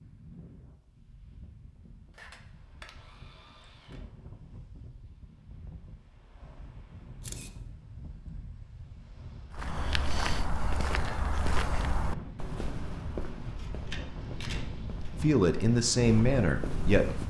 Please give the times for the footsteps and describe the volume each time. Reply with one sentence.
You can hear the footsteps from 9.5 to 17.2 s, getting quieter then louder.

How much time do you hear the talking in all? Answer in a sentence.
You can hear the talking for 2 seconds altogether.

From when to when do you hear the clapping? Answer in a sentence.
You can't hear the clapping here.